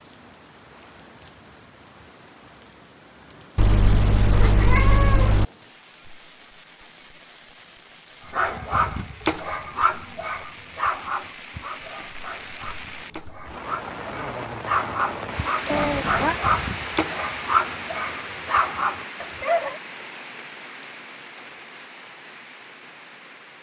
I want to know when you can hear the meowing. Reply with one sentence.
The meowing can be heard from 3.5 to 5.5 s and from 15.7 to 16.4 s.